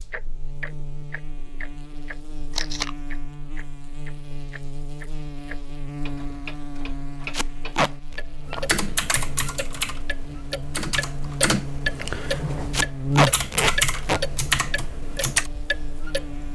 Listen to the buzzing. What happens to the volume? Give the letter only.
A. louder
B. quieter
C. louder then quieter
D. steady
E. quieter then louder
A.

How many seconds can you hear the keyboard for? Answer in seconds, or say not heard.
7 s.